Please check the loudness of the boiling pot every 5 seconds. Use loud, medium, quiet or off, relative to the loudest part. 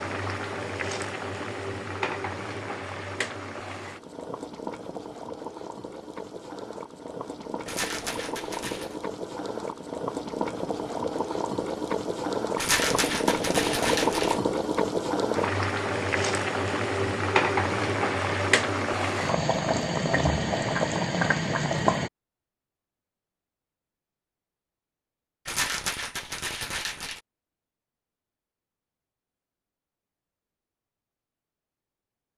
medium, medium, loud, loud, loud, off, off.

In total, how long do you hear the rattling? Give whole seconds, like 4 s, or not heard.
5 s.